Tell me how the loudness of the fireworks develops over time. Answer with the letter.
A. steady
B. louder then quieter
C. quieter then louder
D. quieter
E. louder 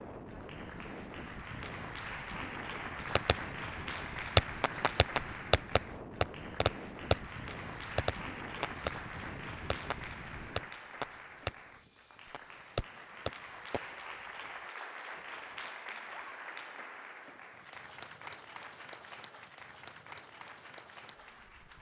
D.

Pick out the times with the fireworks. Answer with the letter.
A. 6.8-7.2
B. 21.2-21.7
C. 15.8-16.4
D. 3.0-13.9
D.